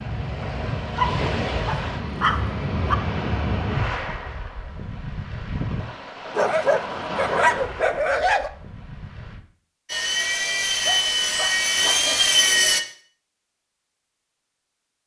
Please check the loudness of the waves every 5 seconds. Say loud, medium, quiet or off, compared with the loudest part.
loud, medium, off.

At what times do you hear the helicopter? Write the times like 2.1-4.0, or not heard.
9.8-12.8.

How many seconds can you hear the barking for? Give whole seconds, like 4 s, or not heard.
6 s.